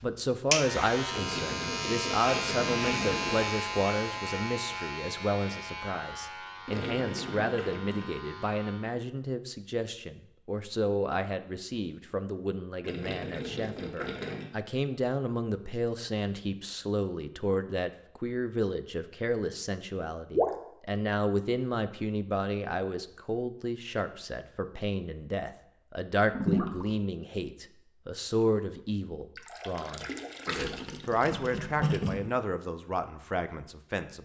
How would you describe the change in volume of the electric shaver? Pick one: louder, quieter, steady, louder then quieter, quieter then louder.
quieter.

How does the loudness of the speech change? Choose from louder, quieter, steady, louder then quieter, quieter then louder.
steady.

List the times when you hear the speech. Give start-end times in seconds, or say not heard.
0.0-34.2.